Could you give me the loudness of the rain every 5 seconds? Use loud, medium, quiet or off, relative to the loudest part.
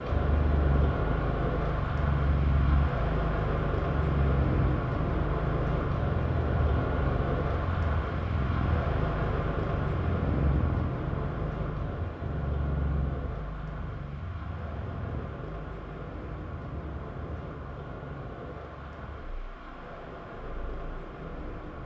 loud, loud, medium, medium, medium.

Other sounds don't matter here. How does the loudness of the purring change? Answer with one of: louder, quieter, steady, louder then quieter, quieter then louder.
quieter.